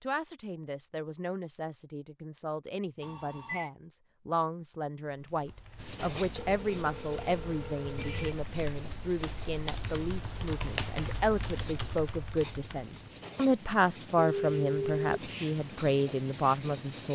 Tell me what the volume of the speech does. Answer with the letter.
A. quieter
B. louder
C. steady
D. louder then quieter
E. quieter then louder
B.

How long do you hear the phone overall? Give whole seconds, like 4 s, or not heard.
4 s.